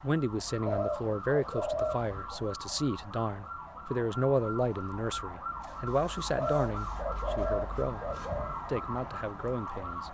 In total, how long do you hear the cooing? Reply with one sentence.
The cooing can be heard for 4 seconds in total.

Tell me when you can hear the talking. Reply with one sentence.
You can hear the talking from 0.0 to 8.0 s and from 8.7 to 10.1 s.